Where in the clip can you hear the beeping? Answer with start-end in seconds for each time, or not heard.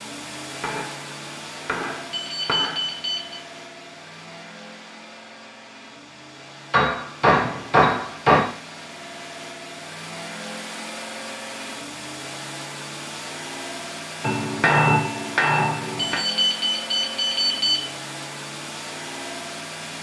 2.1-3.4, 15.9-17.9.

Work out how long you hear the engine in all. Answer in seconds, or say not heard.
20 s.